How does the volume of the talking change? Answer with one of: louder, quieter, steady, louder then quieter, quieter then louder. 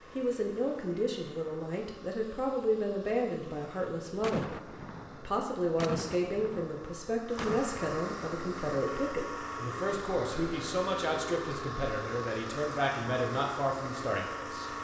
steady.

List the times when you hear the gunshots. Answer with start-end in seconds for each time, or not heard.
4.2-7.7.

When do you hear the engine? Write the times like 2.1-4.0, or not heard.
0.0-14.8.